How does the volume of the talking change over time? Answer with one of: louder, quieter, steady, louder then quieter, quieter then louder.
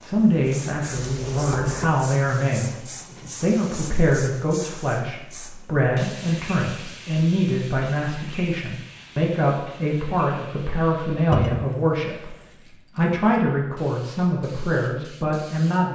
steady.